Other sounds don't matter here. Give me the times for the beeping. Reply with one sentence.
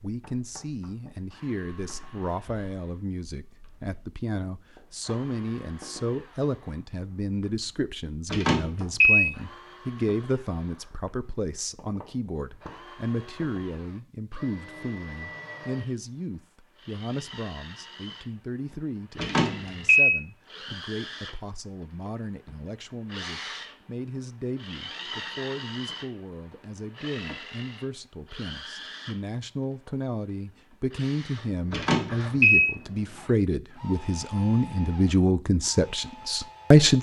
The beeping can be heard from 8.3 to 9.2 s, from 19.1 to 20.1 s and from 31.7 to 32.6 s.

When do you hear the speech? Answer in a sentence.
The speech can be heard from 0.0 to 36.9 s.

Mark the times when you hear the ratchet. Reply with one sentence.
The ratchet can't be heard in this clip.